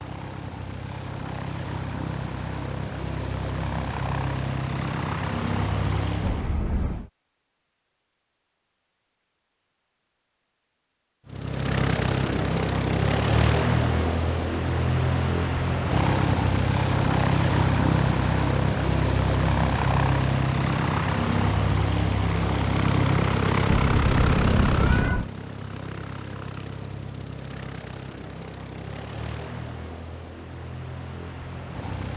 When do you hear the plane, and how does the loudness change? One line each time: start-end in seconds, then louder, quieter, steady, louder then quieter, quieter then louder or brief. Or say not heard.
0.0-6.6 louder
11.2-32.1 quieter.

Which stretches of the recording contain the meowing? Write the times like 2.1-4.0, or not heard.
6.2-7.1, 23.6-25.2.